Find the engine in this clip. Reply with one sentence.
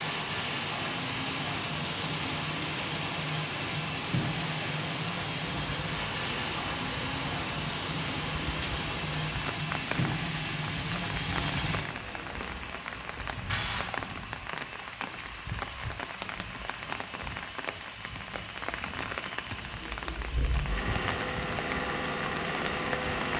The engine can be heard from 0.0 to 13.8 s and from 19.5 to 23.3 s.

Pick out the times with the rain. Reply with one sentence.
You can hear the rain from 0.0 to 23.3 s.